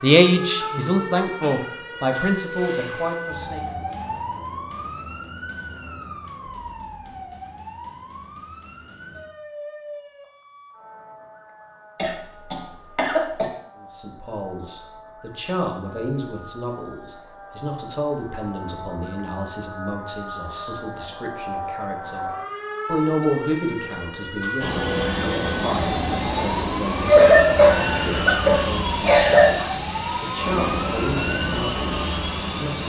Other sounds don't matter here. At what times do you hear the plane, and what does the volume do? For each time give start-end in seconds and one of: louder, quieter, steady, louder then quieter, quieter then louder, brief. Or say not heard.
24.6-32.8 steady.